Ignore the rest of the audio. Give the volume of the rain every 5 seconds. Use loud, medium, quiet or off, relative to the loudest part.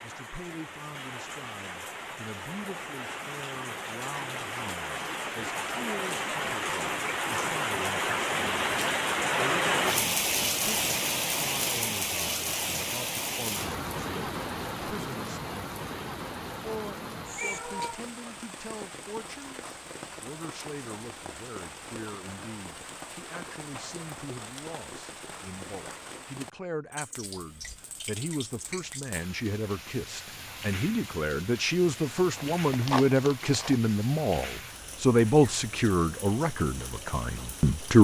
medium, loud, loud, medium, quiet, quiet, quiet, quiet.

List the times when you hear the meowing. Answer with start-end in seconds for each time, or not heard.
17.4-18.1.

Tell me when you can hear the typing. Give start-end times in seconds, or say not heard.
not heard.